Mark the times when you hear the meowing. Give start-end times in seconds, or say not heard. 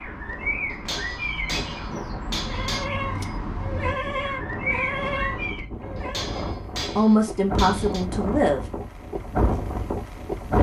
not heard.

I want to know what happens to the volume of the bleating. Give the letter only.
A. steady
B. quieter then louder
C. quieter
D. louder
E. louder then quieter
C.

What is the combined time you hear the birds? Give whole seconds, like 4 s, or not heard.
6 s.